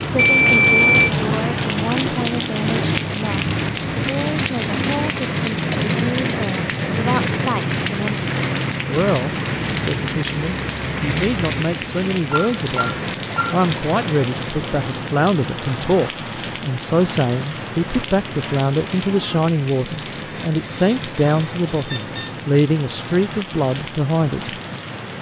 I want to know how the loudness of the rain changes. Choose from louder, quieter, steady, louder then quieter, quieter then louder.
quieter.